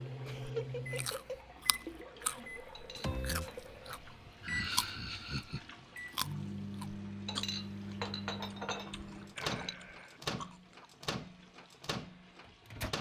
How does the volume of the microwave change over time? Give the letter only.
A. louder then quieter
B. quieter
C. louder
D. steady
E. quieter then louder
D.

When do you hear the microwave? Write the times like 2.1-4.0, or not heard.
0.0-12.9.